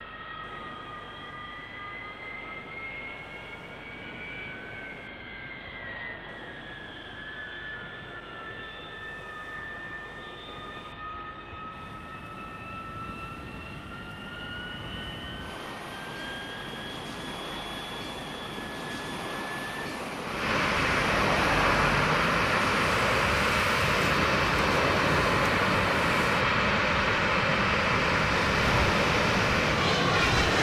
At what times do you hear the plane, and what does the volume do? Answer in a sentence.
The plane can be heard from 0.0 to 30.5 s, getting louder.